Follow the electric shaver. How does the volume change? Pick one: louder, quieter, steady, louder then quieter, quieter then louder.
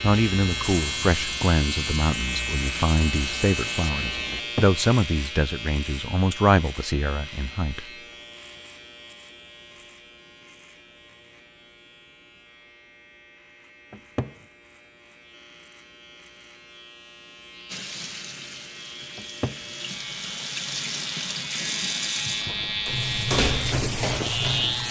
quieter then louder.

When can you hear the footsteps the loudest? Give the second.
23 s.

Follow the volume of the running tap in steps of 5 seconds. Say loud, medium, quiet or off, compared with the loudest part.
medium, off, off, medium, loud.